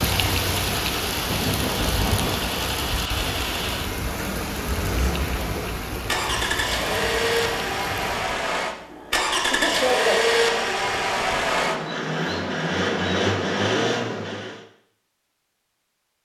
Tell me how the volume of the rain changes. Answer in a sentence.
The loudness of the rain goes down.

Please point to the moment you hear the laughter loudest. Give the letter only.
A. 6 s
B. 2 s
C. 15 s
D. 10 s
D.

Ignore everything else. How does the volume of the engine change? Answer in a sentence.
The volume of the engine goes up.